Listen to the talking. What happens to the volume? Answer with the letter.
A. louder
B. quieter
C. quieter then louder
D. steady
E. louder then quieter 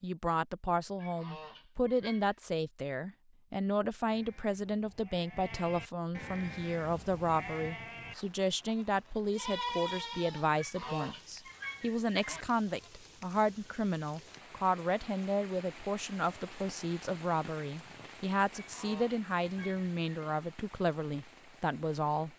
D.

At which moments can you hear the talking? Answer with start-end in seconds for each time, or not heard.
0.0-22.3.